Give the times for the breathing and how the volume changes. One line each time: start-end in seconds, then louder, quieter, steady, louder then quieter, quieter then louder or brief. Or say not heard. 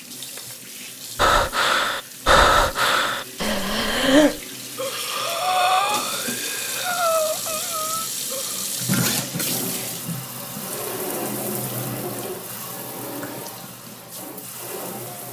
1.1-8.7 quieter.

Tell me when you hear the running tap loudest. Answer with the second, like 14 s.
9 s.